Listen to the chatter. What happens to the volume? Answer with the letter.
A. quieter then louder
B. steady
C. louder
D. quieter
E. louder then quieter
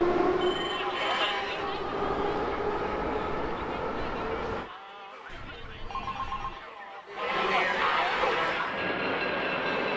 A.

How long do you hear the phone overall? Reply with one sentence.
The phone can be heard for 2 seconds in total.